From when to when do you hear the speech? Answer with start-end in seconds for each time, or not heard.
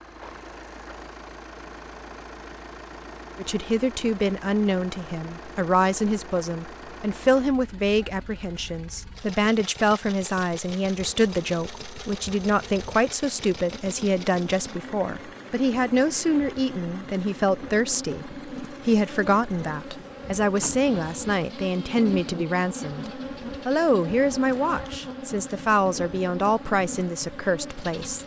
3.4-28.2.